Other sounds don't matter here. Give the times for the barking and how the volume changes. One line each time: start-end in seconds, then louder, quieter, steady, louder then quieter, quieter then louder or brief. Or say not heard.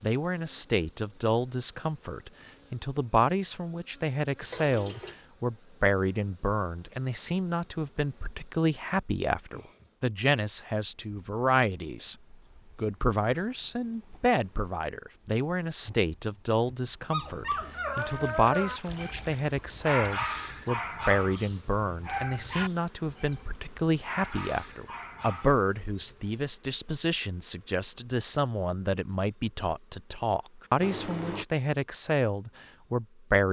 17.1-26.3 quieter.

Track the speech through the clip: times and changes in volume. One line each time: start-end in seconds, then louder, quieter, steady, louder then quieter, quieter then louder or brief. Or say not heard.
0.0-12.2 steady
12.8-33.4 steady.